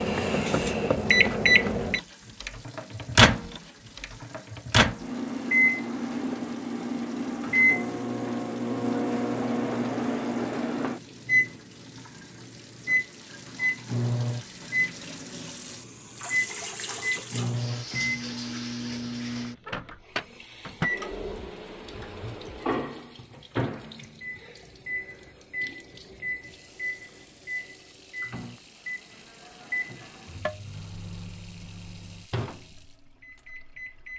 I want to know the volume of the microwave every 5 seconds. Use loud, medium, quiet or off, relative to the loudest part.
loud, loud, loud, medium, medium, quiet, quiet.